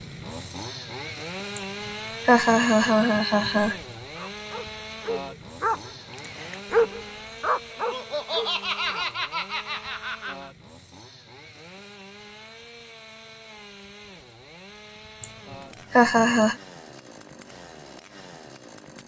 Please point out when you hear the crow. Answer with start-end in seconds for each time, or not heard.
not heard.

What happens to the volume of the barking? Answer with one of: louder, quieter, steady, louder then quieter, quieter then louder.
louder then quieter.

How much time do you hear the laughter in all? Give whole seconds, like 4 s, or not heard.
6 s.